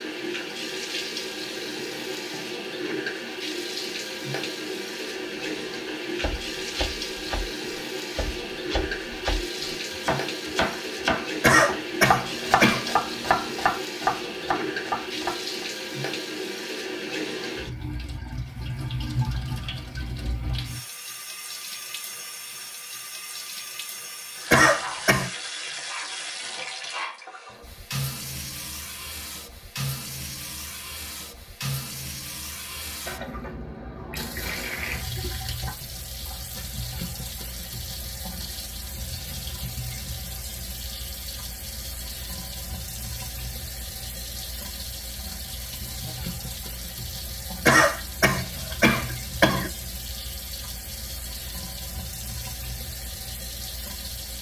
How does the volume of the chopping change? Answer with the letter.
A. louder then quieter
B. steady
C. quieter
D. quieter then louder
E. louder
E.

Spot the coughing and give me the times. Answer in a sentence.
The coughing can be heard from 11.4 to 12.9 s, from 24.5 to 25.3 s and from 47.6 to 49.7 s.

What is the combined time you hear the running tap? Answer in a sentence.
You can hear the running tap for 54 seconds altogether.